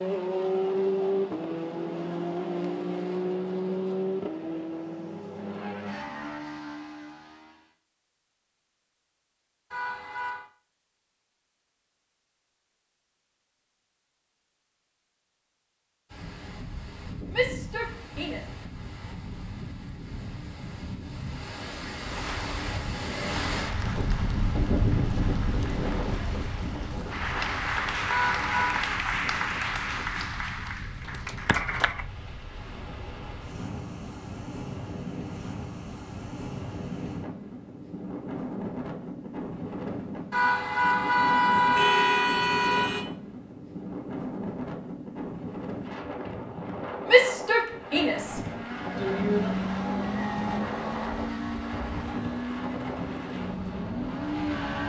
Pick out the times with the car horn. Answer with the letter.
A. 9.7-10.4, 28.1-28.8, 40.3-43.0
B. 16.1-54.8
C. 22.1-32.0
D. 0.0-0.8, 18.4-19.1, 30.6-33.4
A.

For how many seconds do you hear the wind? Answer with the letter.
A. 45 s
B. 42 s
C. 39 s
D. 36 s
C.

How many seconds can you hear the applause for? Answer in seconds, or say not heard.
10 s.